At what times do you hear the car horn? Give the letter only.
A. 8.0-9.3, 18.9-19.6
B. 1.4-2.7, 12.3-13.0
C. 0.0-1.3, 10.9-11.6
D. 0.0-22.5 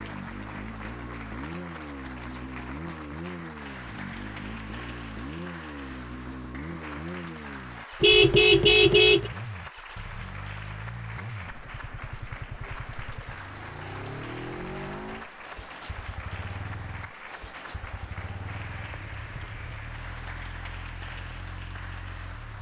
A.